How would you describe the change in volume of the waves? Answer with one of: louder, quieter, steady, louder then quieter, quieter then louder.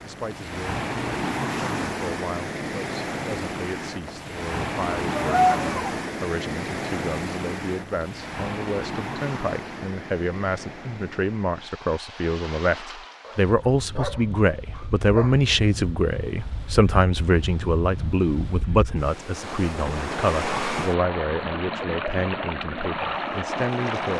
quieter then louder.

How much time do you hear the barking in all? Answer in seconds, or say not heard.
3 s.